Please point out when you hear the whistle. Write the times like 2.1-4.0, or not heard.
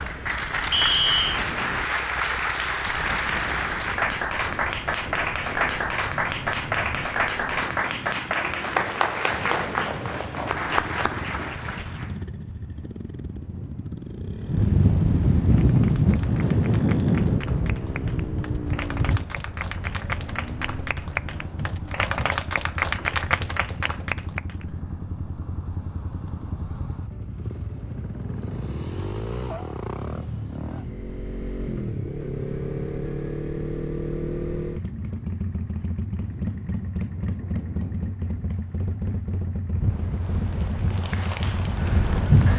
0.7-1.4.